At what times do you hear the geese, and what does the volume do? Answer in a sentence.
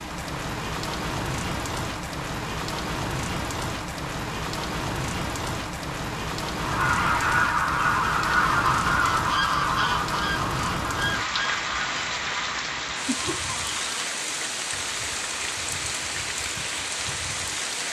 The geese can be heard from 6.6 to 14.1 s, getting quieter.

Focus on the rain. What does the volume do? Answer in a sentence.
The loudness of the rain stays about the same.